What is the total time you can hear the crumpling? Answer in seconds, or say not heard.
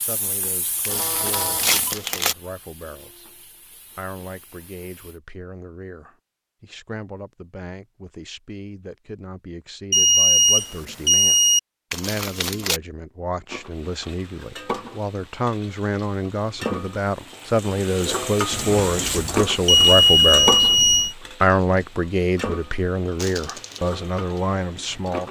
3 s.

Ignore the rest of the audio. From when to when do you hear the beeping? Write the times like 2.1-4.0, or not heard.
0.8-1.9, 9.9-11.6, 18.5-21.1.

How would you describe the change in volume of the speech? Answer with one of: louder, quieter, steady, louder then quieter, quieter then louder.
louder.